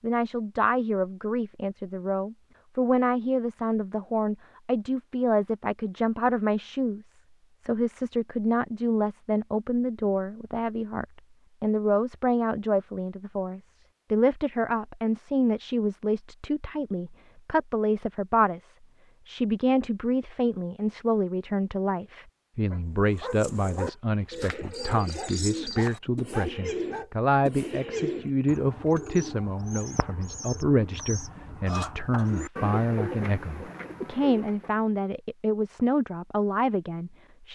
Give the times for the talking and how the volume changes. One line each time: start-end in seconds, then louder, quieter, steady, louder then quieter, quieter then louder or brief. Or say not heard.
0.0-37.5 steady.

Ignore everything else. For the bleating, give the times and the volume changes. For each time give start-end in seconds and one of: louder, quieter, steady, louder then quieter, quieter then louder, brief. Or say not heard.
not heard.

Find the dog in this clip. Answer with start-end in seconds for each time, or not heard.
22.7-27.1.